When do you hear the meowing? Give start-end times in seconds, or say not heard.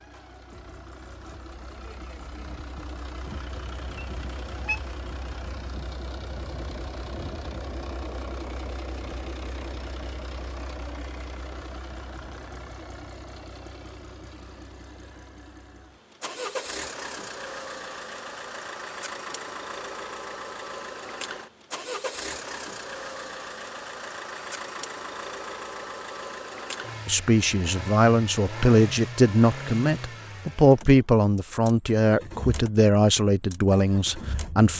4.0-4.8.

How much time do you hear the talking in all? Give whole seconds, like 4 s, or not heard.
8 s.